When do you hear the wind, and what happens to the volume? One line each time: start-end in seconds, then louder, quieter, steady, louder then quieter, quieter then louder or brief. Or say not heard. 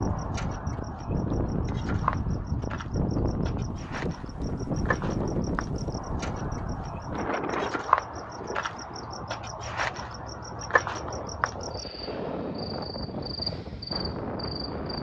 0.0-14.9 quieter then louder.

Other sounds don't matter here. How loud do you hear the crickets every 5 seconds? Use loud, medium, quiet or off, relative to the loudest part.
medium, loud, loud.